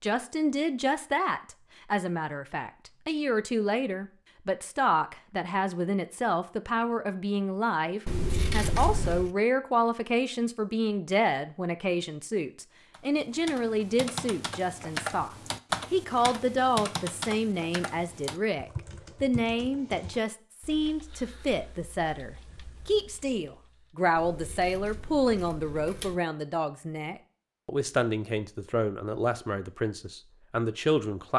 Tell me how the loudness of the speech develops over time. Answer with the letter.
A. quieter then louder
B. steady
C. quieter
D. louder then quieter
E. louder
B.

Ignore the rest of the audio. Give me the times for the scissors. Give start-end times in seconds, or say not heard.
8.1-9.3, 24.1-26.1.